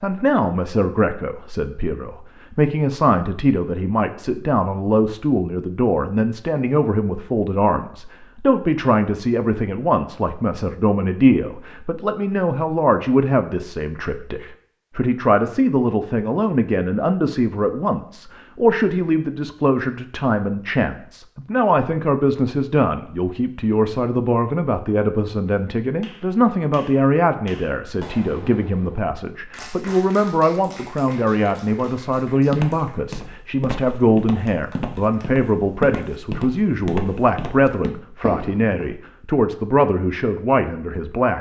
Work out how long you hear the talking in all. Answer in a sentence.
You can hear the talking for 41 seconds altogether.